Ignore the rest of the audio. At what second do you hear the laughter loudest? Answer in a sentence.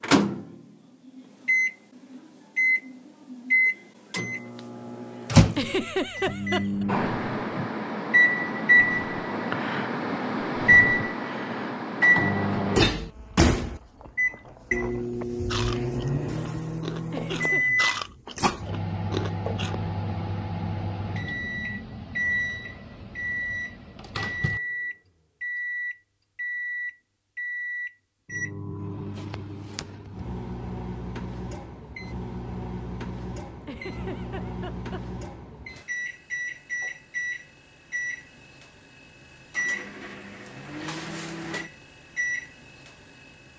The loudest moment of the laughter is at 6 seconds.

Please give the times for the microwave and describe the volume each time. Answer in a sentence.
The microwave can be heard from 0.0 to 43.5 s, getting quieter.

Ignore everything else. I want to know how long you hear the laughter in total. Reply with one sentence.
You can hear the laughter for 3 seconds altogether.